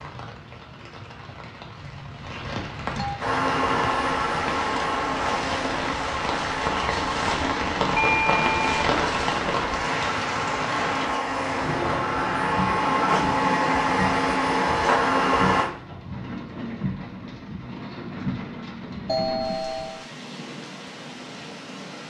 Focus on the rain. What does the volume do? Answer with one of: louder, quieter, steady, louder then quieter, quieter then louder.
louder then quieter.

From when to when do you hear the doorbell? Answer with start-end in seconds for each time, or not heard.
1.8-3.1, 8.0-8.9, 19.1-20.1.